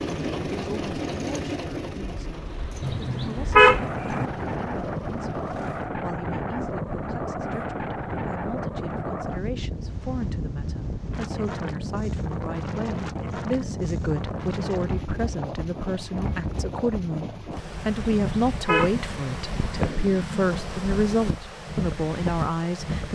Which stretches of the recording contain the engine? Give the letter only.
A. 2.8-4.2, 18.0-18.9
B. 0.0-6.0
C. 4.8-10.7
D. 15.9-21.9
B.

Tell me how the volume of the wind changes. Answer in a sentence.
The volume of the wind stays about the same.